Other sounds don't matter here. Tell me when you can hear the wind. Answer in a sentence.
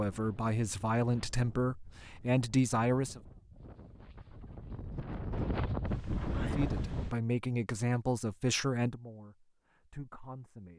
The wind can be heard from 0.0 to 7.2 s.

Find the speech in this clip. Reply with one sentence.
You can hear the speech from 0.0 to 3.2 s and from 6.5 to 10.7 s.